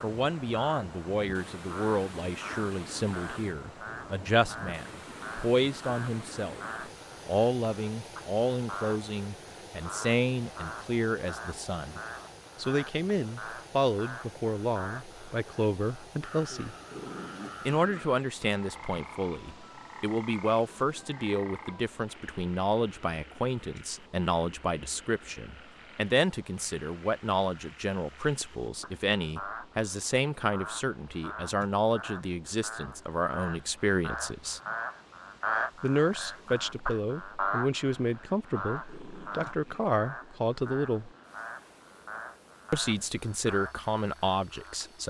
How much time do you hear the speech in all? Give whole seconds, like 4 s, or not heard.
41 s.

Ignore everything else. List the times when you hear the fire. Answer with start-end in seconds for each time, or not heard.
not heard.